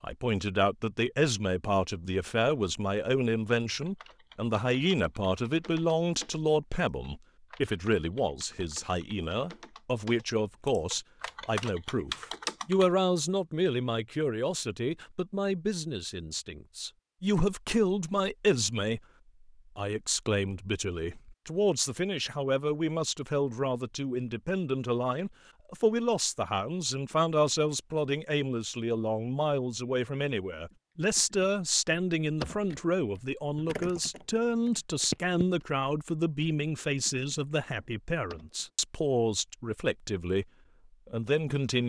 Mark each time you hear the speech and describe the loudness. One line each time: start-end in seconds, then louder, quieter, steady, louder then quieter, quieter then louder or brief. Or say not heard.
0.0-19.0 steady
19.8-40.5 steady
41.0-41.8 brief.